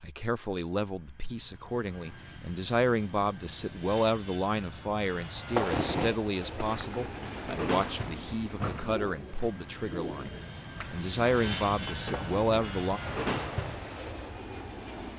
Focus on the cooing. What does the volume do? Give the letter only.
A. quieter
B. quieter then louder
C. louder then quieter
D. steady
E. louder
B.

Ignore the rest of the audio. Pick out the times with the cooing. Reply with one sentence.
The cooing can be heard from 5.5 to 14.2 s.